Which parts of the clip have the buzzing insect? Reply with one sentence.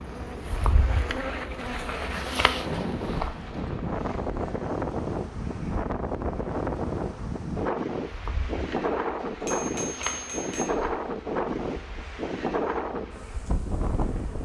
The buzzing insect can be heard from 0.0 to 14.4 s.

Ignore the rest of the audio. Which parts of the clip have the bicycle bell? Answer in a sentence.
The bicycle bell can be heard from 9.3 to 10.7 s.